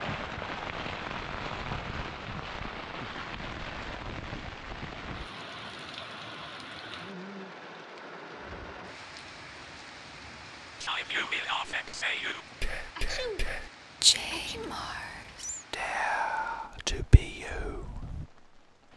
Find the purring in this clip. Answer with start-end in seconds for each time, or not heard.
not heard.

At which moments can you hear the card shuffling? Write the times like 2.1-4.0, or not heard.
not heard.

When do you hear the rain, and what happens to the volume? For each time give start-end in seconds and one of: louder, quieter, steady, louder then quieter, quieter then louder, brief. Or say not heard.
0.0-18.9 quieter.